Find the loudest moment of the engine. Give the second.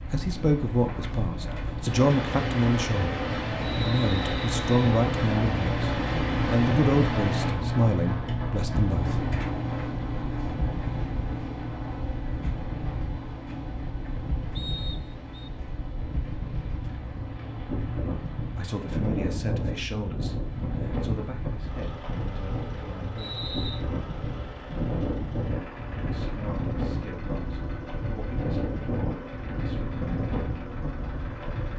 7 s.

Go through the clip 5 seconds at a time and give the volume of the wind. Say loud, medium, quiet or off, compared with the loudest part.
loud, loud, medium, loud, loud, loud, loud.